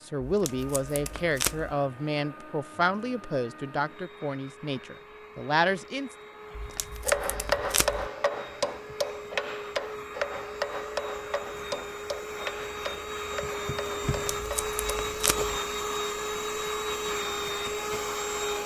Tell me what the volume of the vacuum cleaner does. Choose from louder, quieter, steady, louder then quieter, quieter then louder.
louder.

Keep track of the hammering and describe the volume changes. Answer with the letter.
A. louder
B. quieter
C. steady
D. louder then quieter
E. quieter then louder
B.